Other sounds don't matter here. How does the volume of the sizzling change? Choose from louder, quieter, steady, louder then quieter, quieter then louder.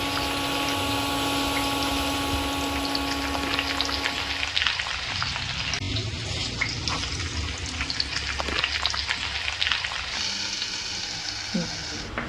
louder.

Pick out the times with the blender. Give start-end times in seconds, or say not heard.
0.0-4.6.